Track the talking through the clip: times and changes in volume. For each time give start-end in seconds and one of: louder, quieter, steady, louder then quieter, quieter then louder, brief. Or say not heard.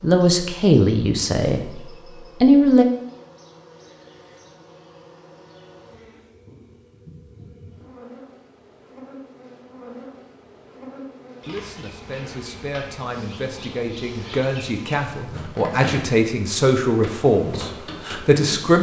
0.0-1.8 brief
2.4-2.9 brief
11.4-18.7 louder.